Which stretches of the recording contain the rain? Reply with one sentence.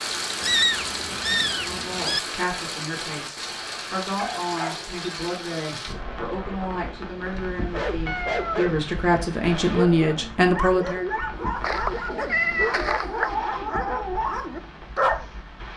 The rain can be heard from 0.0 to 15.7 s.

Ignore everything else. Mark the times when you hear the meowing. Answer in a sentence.
The meowing can be heard from 0.4 to 2.2 s, from 8.1 to 8.7 s and from 11.6 to 13.2 s.